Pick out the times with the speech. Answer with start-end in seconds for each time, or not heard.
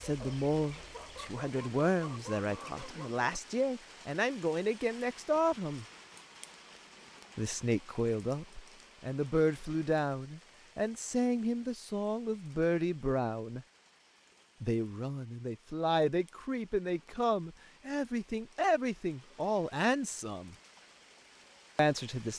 0.0-5.8, 7.3-13.7, 14.6-20.6, 21.8-22.3.